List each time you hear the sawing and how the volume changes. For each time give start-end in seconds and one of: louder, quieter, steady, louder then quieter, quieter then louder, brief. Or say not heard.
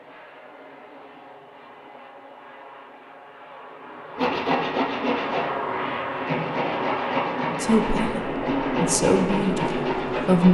4.2-10.4 steady.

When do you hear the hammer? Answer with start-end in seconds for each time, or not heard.
not heard.